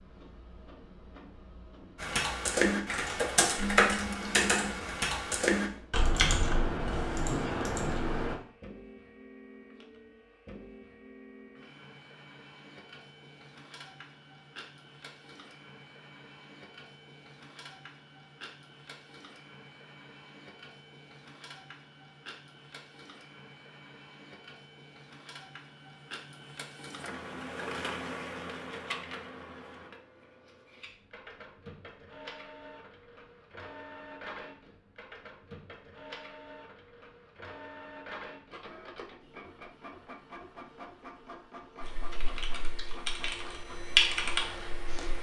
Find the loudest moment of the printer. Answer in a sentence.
The volume of the printer peaks at 28 seconds.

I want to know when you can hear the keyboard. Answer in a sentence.
The keyboard can be heard from 2.0 to 8.3 s and from 41.8 to 45.1 s.